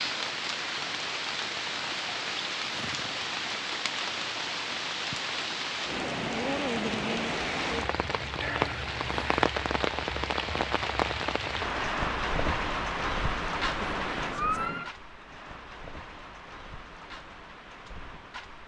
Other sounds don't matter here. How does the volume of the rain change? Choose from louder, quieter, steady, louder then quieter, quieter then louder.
quieter.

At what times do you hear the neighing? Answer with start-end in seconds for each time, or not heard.
2.7-3.2, 8.4-9.4, 13.8-14.9.